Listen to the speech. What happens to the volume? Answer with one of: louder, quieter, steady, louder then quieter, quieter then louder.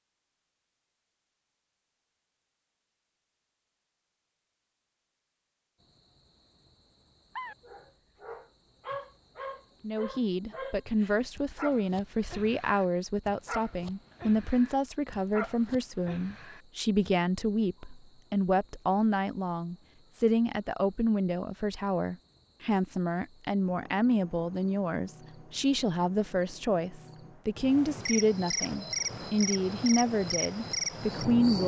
steady.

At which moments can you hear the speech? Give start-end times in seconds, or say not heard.
9.8-31.6.